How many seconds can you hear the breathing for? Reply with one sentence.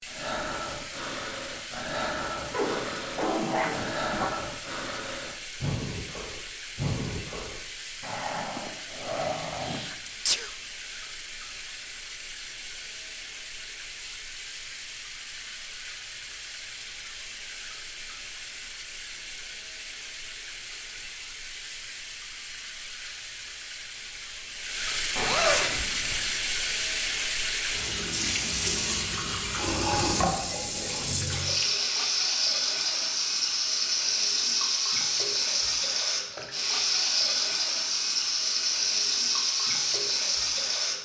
You can hear the breathing for 10 seconds altogether.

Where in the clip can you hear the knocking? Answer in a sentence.
The knocking can't be heard in this clip.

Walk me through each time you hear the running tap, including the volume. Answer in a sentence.
The running tap can be heard from 0.0 to 40.9 s, getting louder.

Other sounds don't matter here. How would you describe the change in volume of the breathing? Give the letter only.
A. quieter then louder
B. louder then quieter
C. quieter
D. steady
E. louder
D.